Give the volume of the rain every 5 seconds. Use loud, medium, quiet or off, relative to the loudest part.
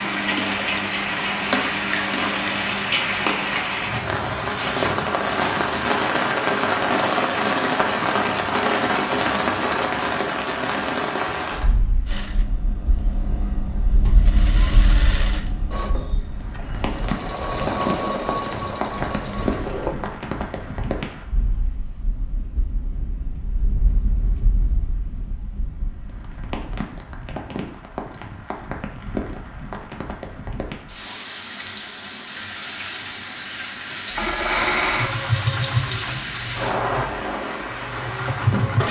loud, loud, medium, medium, quiet, quiet, medium, medium.